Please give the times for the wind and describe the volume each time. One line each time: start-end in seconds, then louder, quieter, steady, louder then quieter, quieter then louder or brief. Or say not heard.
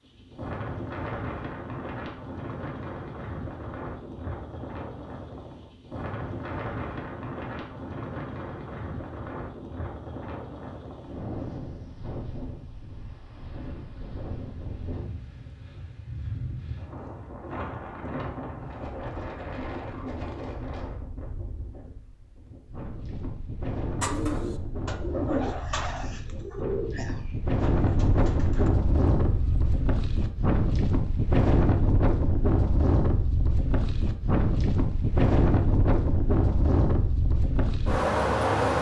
0.0-38.7 louder.